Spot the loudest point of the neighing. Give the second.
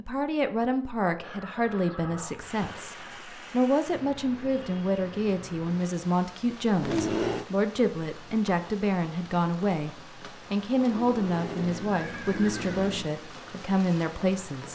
7 s.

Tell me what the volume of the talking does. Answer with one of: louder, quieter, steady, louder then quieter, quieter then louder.
steady.